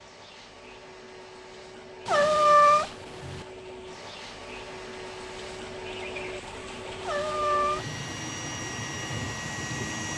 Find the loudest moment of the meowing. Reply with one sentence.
The volume of the meowing peaks at 3 seconds.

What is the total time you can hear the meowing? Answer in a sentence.
The meowing can be heard for 2 seconds in total.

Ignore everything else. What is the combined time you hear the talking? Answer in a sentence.
You can't hear the talking here.